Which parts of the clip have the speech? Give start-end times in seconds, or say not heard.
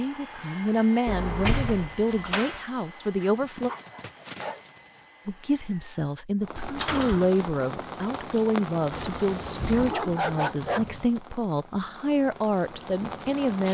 0.0-3.7, 5.2-13.6.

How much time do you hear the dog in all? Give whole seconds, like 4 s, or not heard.
4 s.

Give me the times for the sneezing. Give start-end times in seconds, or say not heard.
not heard.